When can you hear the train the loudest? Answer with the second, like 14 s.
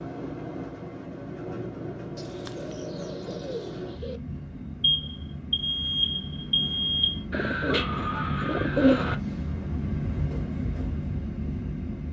10 s.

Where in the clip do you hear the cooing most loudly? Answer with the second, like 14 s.
9 s.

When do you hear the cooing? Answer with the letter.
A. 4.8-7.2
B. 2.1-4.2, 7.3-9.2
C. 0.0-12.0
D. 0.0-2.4
B.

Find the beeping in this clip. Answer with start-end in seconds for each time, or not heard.
4.8-7.2.